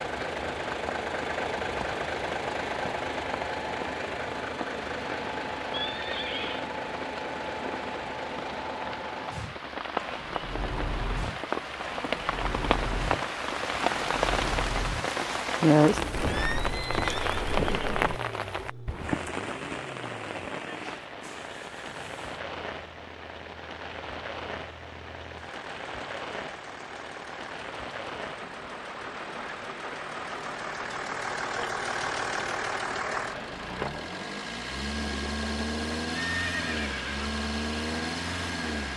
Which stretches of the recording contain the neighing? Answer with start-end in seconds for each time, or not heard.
5.7-6.7, 16.1-18.2, 36.2-37.2.